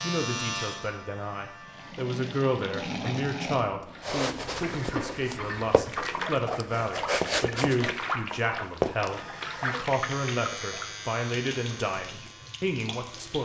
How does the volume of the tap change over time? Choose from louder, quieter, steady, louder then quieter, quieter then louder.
quieter.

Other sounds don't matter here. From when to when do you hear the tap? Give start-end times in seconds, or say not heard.
1.6-13.4.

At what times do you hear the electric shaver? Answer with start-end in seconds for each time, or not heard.
0.0-1.9, 9.1-13.4.